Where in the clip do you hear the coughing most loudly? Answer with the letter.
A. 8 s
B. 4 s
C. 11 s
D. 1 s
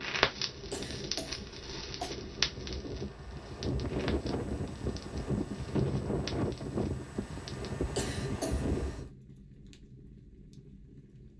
A.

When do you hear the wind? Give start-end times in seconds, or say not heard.
0.0-9.1.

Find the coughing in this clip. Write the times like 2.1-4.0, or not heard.
0.5-2.1, 7.8-9.0.